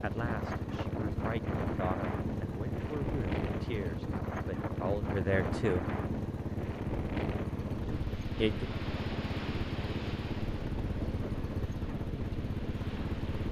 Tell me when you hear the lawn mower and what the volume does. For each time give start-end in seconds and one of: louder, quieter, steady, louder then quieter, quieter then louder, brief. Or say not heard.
0.0-13.4 steady.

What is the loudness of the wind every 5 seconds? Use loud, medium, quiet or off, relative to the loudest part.
loud, loud, medium.